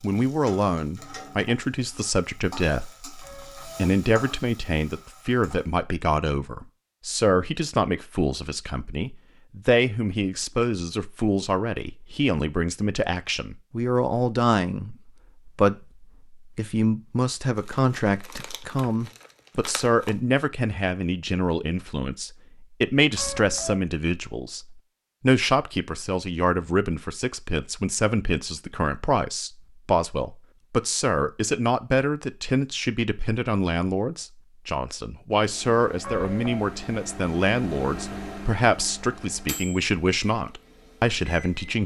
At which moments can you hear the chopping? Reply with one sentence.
The chopping can't be heard in this clip.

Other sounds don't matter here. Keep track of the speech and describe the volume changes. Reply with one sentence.
The volume of the speech stays about the same.